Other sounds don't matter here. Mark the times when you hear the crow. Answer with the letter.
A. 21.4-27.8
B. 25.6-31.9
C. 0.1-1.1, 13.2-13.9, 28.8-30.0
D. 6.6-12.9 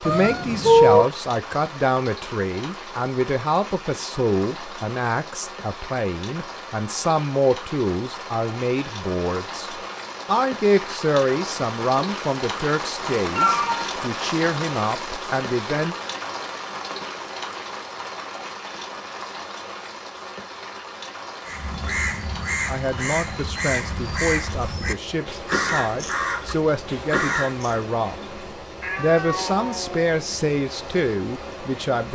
A.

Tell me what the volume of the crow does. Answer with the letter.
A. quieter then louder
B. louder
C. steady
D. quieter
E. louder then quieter
C.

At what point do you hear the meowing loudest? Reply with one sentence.
The volume of the meowing peaks at 1 second.